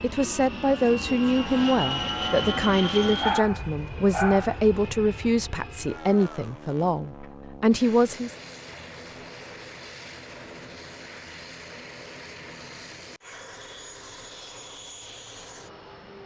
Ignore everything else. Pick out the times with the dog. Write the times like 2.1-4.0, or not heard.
3.2-4.6.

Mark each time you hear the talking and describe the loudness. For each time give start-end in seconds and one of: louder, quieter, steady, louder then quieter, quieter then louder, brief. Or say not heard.
0.0-8.3 steady.